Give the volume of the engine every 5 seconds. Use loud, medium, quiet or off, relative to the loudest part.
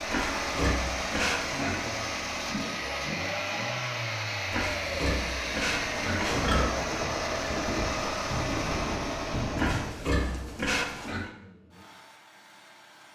loud, loud, quiet.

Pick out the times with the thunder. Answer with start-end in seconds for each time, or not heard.
5.7-9.9.